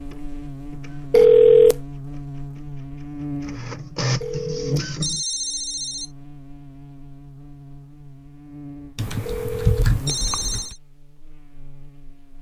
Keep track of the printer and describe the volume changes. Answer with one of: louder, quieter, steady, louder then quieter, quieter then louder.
quieter then louder.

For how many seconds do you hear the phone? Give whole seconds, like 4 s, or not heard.
4 s.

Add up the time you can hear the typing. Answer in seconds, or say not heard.
2 s.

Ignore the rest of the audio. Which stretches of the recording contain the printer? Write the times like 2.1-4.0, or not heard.
0.0-5.2.